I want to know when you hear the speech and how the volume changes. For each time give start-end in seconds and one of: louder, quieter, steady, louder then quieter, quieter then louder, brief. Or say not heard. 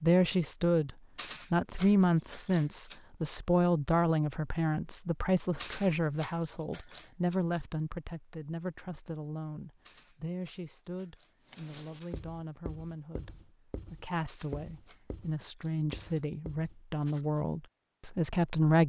0.0-0.9 brief
1.5-18.8 quieter then louder.